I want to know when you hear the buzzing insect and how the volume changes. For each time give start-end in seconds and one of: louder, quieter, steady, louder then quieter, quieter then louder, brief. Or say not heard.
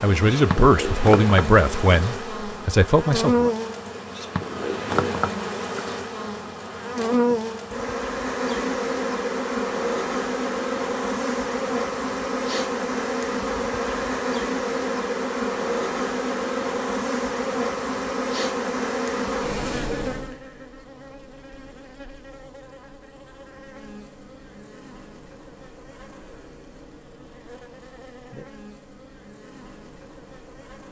0.0-30.8 quieter.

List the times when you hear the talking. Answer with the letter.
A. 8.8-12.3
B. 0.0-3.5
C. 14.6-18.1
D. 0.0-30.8
B.